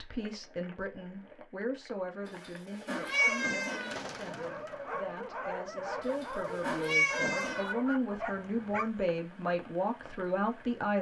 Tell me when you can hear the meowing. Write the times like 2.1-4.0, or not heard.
2.2-4.0, 6.0-7.8.